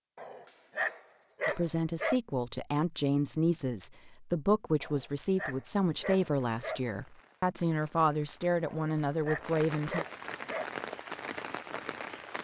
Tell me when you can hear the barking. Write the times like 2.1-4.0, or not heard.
0.1-2.2, 4.8-6.8, 8.7-10.7.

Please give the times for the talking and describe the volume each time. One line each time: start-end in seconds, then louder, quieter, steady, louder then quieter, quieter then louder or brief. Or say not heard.
1.4-10.1 steady.